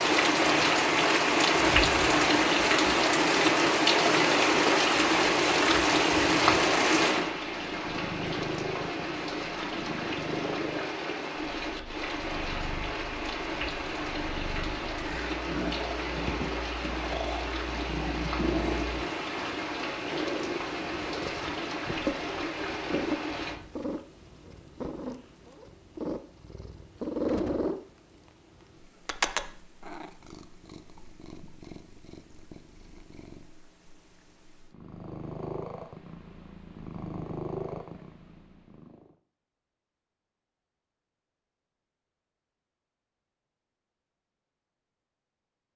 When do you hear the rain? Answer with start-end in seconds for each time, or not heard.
0.0-23.6.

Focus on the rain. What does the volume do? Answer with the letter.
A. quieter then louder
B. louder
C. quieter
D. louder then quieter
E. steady
C.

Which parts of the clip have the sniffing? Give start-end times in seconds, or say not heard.
not heard.